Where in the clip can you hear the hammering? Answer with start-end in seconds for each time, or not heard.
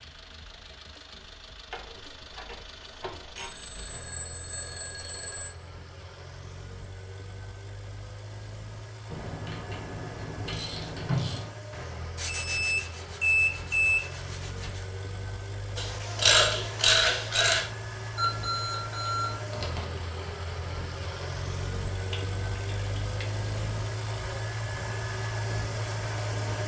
not heard.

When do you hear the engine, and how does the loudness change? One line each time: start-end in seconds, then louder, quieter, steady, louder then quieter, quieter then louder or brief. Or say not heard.
0.0-26.6 louder.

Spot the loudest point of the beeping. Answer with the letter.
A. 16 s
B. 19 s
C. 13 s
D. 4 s
C.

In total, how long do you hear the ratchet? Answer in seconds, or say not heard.
8 s.